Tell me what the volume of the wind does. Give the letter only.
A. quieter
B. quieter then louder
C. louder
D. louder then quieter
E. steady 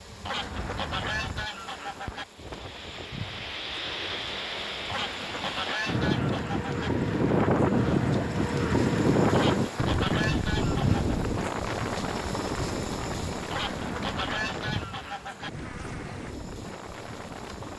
D.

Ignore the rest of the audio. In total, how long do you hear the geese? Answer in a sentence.
The geese can be heard for 8 seconds in total.